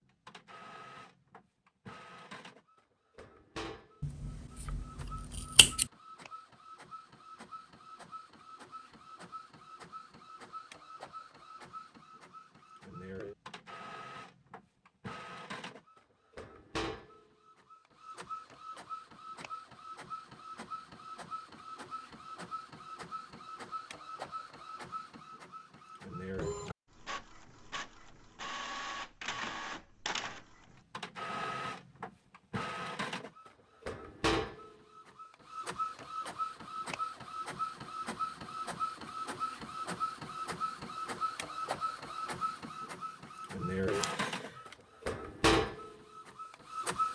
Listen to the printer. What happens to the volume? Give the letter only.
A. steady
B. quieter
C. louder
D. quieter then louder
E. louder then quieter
C.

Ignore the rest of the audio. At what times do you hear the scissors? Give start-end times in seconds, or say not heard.
4.0-5.8, 43.9-44.8.